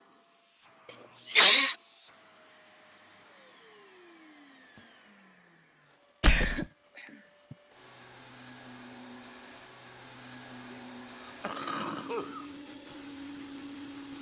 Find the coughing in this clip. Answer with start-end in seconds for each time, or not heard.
1.3-1.8, 6.2-7.5, 10.7-12.5.